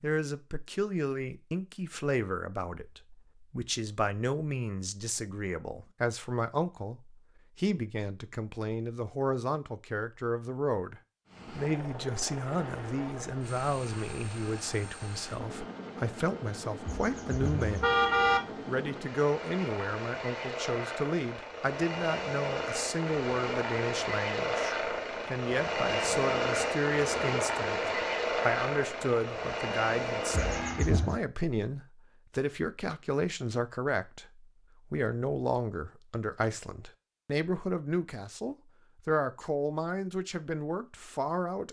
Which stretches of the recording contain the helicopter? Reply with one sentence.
You can hear the helicopter from 11.2 to 30.9 s.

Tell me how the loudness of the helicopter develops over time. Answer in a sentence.
The volume of the helicopter goes up.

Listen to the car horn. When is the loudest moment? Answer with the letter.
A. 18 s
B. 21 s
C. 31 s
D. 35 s
A.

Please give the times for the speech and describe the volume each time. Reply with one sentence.
The speech can be heard from 0.0 to 17.9 s, at a steady volume; and from 18.6 to 41.6 s, at a steady volume.